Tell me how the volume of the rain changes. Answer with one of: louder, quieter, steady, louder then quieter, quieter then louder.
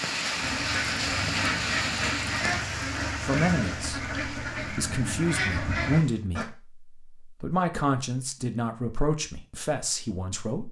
quieter.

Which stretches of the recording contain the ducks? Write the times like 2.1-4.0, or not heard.
0.4-6.5.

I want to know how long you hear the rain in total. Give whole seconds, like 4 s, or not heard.
6 s.